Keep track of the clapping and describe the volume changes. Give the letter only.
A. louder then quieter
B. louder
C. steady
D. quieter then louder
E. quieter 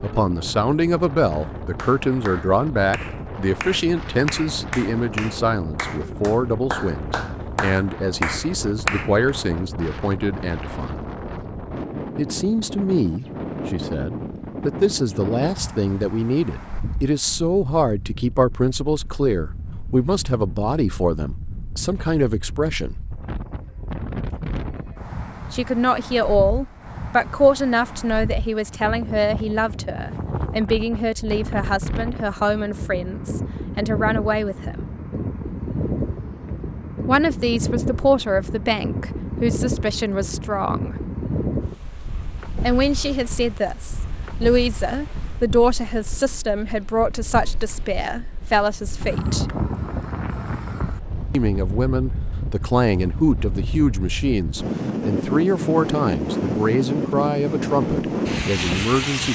B.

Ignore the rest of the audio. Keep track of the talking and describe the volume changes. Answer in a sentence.
The volume of the talking stays about the same.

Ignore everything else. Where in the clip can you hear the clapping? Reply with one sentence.
You can hear the clapping from 1.3 to 9.3 s.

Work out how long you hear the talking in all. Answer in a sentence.
The talking can be heard for 50 seconds in total.